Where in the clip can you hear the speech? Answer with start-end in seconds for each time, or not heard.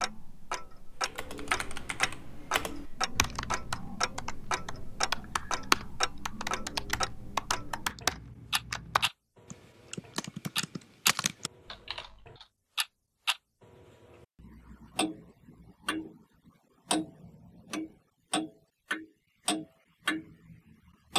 not heard.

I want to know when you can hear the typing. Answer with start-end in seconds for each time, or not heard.
1.1-12.4.